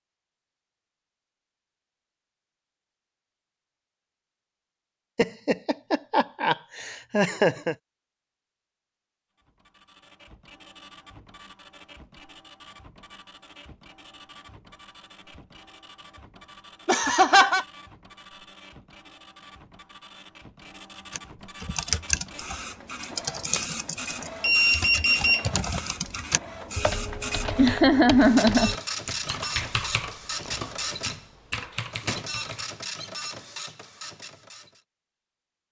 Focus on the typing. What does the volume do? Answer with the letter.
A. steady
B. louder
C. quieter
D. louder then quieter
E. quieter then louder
C.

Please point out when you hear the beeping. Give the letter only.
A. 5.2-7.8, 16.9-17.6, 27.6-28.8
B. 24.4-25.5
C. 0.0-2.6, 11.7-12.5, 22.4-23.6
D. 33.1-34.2
B.